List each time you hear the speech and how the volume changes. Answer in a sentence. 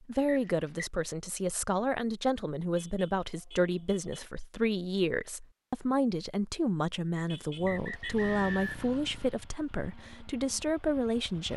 You can hear the speech from 0.0 to 11.5 s, at a steady volume.